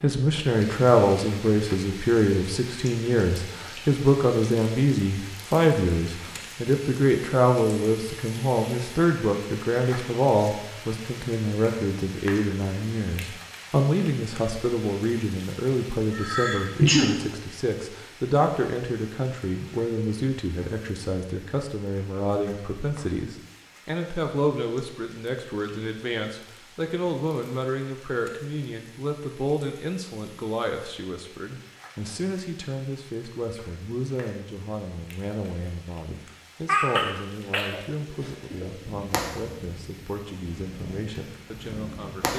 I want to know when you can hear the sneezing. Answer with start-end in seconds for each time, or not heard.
16.1-17.1, 36.6-38.6.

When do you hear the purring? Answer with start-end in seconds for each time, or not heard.
38.8-42.3.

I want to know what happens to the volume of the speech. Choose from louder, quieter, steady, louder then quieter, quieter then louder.
quieter.